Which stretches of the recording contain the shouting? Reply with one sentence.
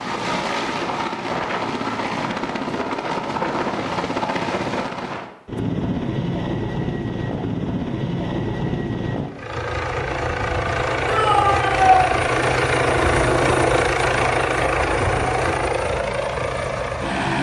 The shouting can be heard from 11.1 to 12.0 s.